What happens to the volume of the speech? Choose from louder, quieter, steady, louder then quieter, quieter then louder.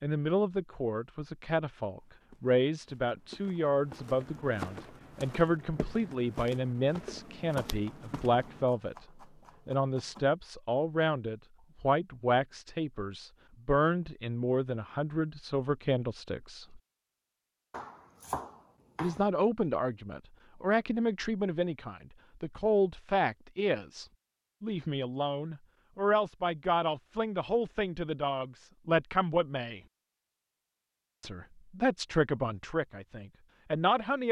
steady.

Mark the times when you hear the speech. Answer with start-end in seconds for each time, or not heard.
0.0-16.8, 19.0-29.8, 31.2-34.2.